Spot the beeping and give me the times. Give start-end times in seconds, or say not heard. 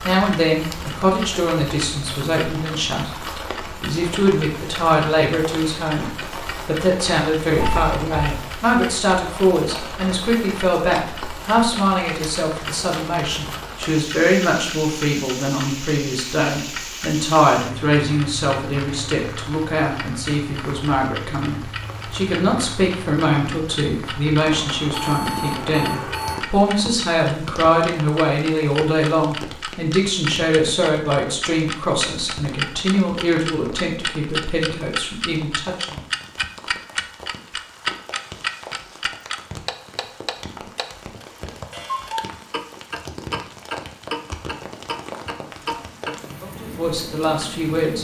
7.5-8.4, 24.6-26.4.